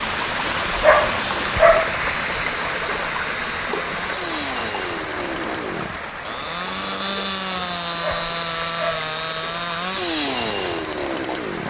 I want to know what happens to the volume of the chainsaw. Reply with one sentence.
The volume of the chainsaw goes up.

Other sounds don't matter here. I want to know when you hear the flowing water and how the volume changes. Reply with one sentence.
You can hear the flowing water from 0.0 to 11.6 s, getting quieter.